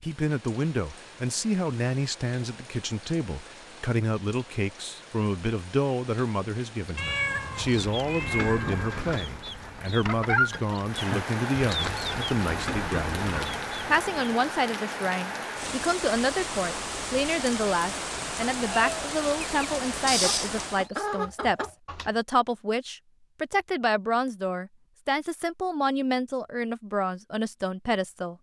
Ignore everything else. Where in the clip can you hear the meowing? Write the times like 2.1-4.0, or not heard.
7.0-9.1.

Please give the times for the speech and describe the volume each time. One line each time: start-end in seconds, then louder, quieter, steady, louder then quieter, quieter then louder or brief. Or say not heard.
0.0-28.3 steady.